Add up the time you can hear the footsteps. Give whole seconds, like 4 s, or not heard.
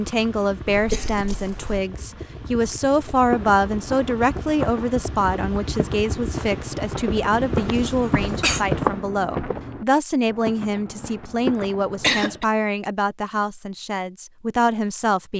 9 s.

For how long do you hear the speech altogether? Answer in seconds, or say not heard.
15 s.